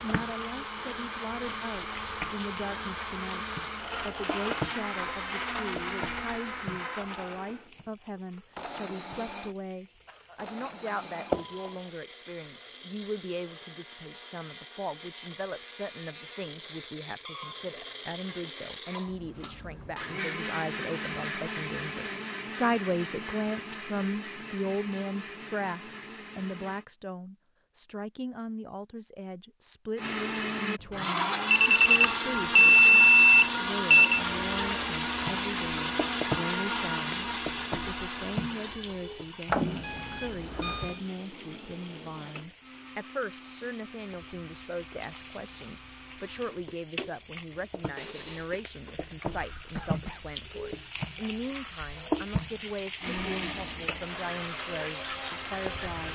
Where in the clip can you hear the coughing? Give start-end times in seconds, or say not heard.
10.1-11.1, 49.7-50.3.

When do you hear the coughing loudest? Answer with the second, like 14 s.
50 s.